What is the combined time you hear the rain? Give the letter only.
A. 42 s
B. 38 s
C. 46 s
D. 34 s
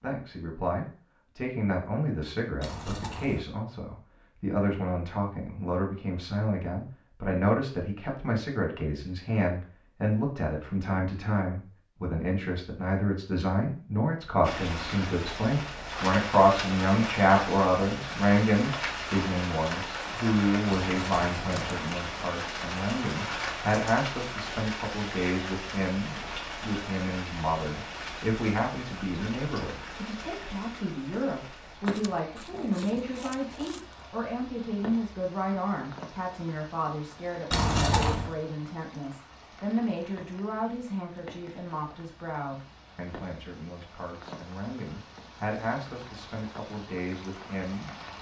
D.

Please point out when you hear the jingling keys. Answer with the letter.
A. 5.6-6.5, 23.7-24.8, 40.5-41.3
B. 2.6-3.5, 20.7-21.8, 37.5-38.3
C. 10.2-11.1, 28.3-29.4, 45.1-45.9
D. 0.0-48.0
B.